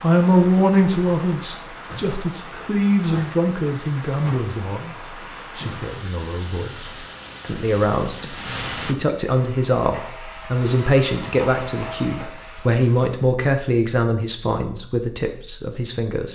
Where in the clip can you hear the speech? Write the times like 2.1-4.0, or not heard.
0.0-16.3.